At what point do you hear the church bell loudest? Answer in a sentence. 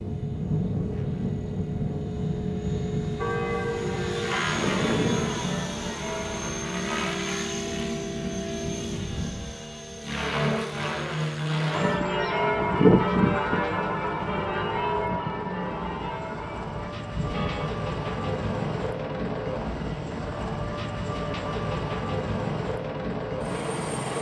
The volume of the church bell peaks at 13 seconds.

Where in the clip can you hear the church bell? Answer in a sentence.
The church bell can be heard from 3.1 to 6.5 s and from 11.7 to 17.7 s.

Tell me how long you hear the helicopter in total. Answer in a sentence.
You can hear the helicopter for 24 seconds altogether.